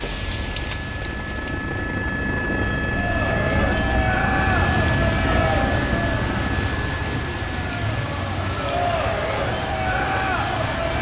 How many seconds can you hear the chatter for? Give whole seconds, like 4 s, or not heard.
8 s.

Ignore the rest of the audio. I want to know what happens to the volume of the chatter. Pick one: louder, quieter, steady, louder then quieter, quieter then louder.
quieter then louder.